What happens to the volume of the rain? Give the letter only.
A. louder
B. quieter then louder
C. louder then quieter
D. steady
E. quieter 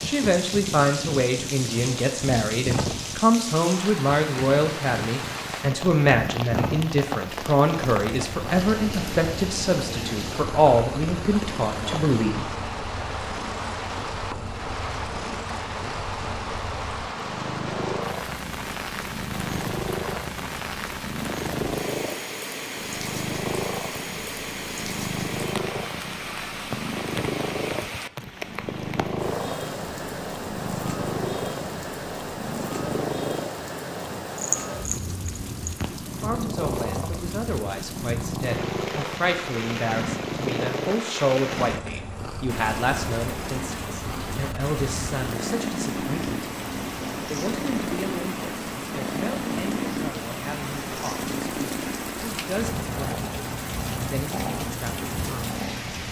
D.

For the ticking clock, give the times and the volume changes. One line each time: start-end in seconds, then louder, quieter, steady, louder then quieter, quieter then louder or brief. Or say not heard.
not heard.